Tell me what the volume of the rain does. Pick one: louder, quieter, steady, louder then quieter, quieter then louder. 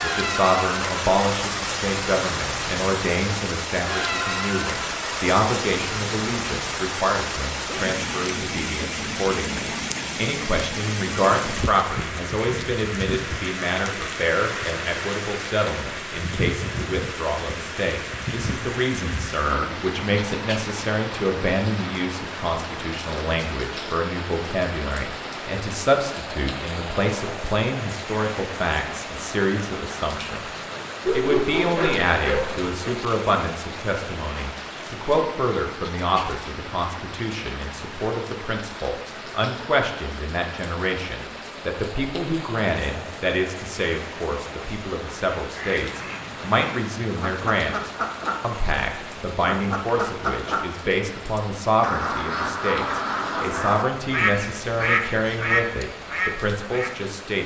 quieter.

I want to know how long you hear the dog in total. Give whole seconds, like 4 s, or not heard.
2 s.